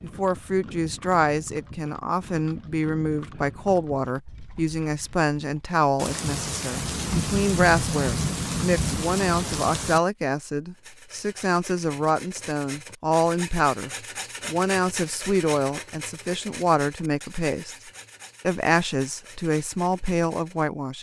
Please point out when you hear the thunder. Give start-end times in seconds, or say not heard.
6.0-10.0.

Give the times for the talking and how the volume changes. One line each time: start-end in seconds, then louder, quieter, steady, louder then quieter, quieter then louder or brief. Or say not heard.
0.0-17.8 steady
18.4-20.9 brief.